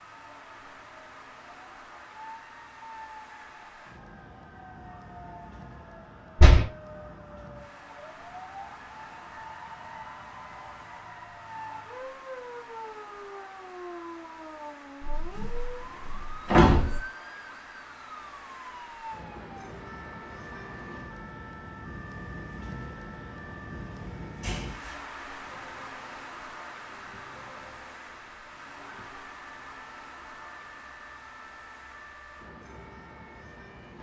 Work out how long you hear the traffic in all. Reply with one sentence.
You can hear the traffic for 34 seconds altogether.